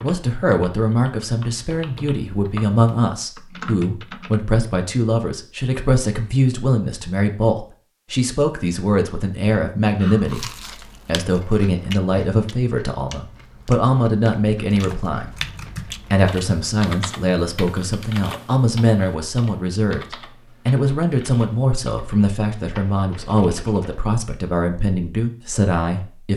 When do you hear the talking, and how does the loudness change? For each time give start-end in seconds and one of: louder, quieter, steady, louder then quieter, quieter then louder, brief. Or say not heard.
0.0-26.3 steady.